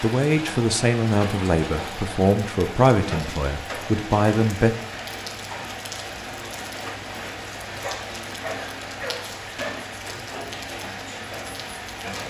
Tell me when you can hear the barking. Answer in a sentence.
You can hear the barking from 7.8 to 9.8 s.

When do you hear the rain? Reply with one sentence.
The rain can be heard from 0.0 to 12.2 s.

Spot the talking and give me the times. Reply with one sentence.
You can hear the talking from 0.0 to 4.8 s.